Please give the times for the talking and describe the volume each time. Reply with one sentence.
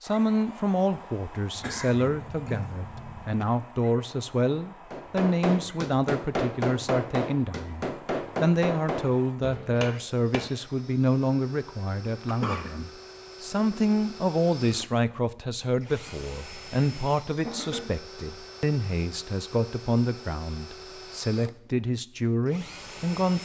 You can hear the talking from 0.0 to 23.3 s, at a steady volume.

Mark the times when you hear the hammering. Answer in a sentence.
The hammering can be heard from 4.9 to 10.5 s.